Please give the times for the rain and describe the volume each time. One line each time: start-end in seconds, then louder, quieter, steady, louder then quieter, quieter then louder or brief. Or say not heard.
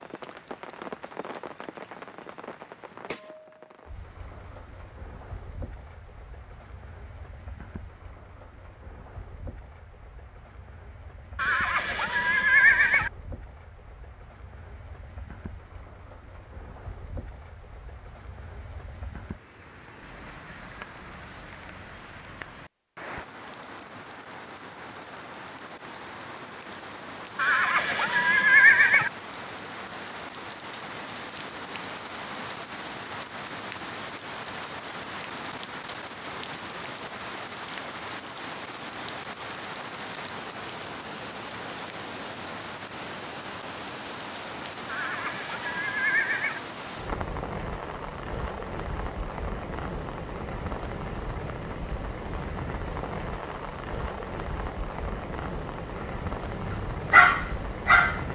0.0-58.3 louder.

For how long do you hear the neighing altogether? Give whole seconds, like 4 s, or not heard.
5 s.